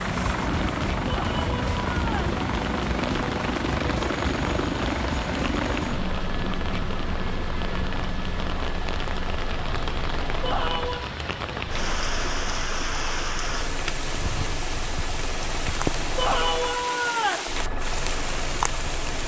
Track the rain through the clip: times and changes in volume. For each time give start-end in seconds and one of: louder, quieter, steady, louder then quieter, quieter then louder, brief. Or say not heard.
0.0-19.2 steady.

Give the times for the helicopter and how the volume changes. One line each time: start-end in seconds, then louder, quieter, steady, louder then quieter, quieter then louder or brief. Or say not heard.
0.0-19.2 quieter.